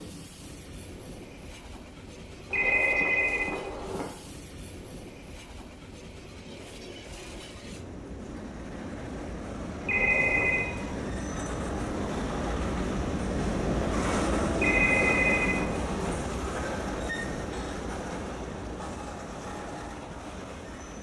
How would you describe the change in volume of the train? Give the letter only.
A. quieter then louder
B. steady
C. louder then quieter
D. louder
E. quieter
C.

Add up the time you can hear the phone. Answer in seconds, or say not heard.
4 s.